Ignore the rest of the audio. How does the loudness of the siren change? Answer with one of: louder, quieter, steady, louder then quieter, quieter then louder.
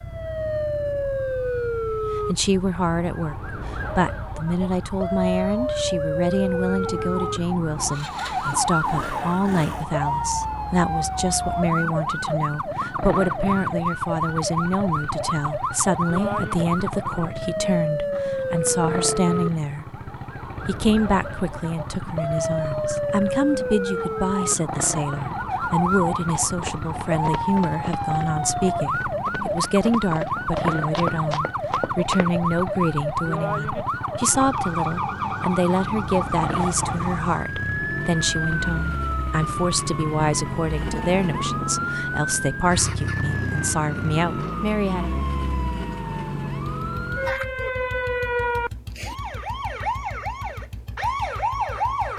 steady.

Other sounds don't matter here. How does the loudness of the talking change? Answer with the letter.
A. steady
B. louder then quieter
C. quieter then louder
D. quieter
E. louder
A.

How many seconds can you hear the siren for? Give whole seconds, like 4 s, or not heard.
52 s.